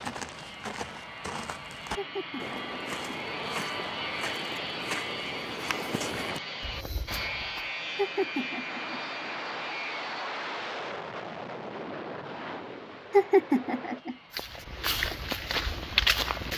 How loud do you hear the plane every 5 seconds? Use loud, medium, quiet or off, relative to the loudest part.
loud, loud, loud, off.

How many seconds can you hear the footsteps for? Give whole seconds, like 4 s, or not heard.
10 s.